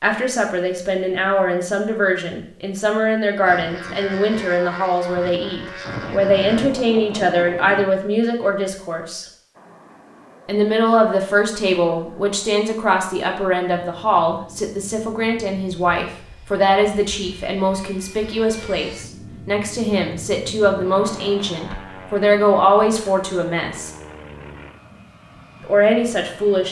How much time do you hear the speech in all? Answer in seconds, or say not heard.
24 s.